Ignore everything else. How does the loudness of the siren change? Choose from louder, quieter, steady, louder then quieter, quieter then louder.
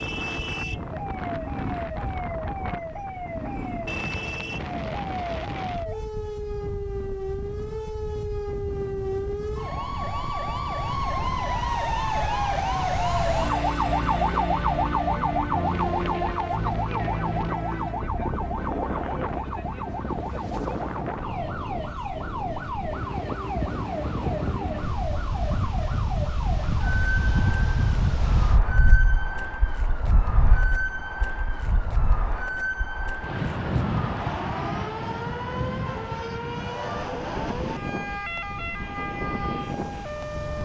louder then quieter.